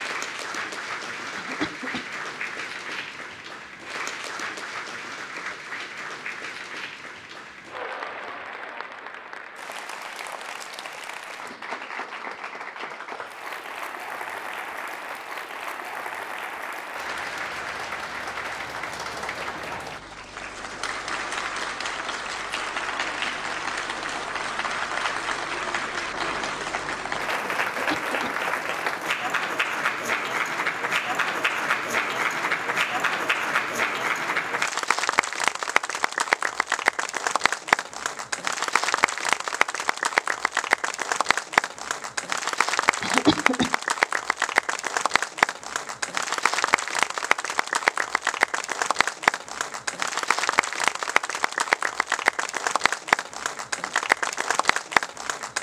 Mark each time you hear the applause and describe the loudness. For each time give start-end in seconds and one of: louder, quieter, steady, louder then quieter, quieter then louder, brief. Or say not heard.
0.0-55.5 louder.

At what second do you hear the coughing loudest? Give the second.
43 s.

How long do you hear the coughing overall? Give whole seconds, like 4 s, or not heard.
2 s.